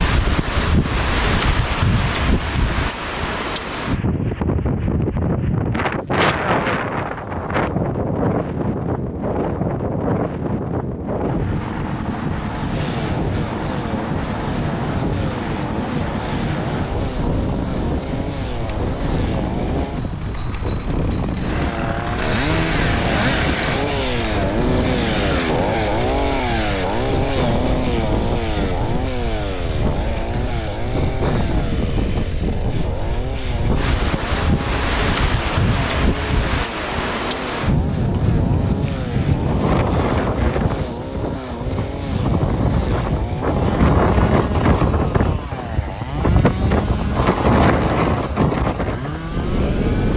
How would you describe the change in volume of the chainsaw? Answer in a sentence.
The loudness of the chainsaw goes up, then down.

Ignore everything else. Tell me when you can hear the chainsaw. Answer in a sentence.
The chainsaw can be heard from 12.7 to 50.1 s.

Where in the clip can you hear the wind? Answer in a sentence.
The wind can be heard from 0.0 to 50.1 s.